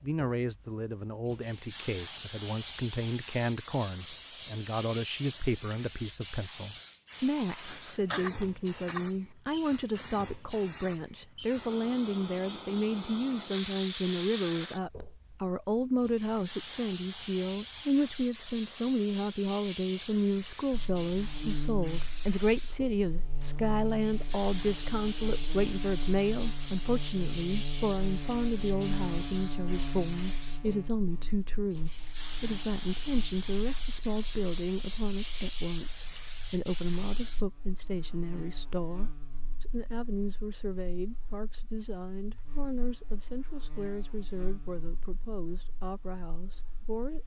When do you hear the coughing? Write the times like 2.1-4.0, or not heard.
7.4-9.0.